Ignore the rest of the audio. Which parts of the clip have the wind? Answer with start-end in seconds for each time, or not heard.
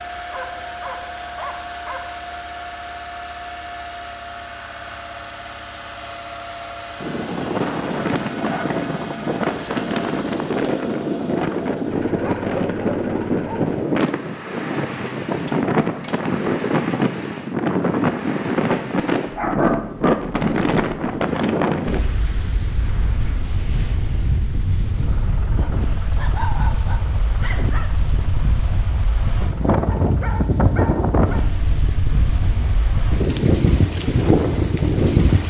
7.0-35.4.